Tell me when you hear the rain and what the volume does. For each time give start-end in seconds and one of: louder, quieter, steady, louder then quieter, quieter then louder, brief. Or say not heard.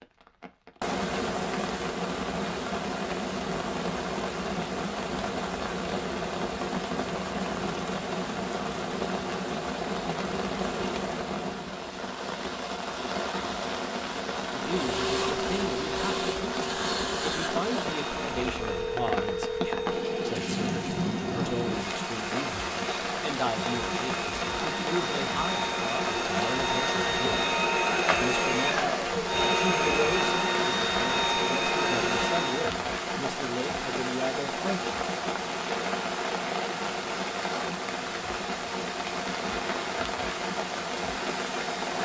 0.0-41.9 steady.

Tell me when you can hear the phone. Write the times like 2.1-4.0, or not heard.
18.6-20.2.